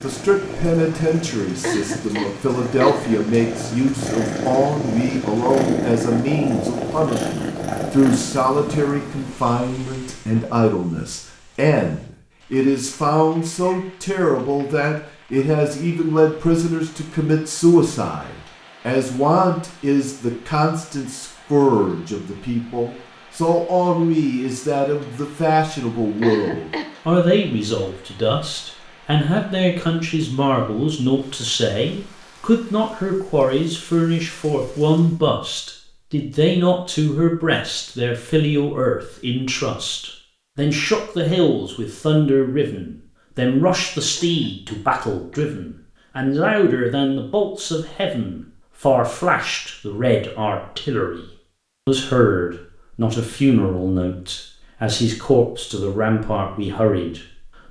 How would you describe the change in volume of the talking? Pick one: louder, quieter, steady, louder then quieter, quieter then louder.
steady.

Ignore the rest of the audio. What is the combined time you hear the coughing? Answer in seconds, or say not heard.
4 s.